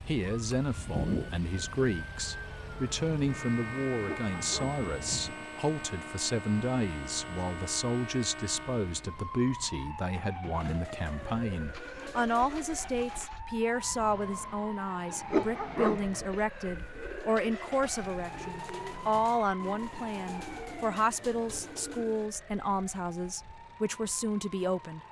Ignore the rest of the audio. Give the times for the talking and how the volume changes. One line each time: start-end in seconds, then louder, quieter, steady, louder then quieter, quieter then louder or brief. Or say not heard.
0.1-25.0 steady.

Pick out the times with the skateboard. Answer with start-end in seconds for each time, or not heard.
not heard.